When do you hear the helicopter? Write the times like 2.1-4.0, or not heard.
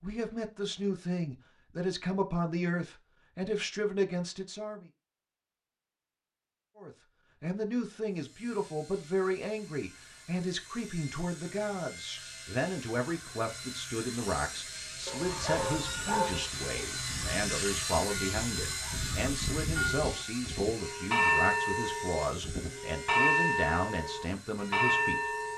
8.1-25.5.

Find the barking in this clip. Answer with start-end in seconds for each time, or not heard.
15.1-16.4.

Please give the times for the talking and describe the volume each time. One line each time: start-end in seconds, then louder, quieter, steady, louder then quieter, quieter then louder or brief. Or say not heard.
0.0-4.8 steady
6.8-25.3 steady.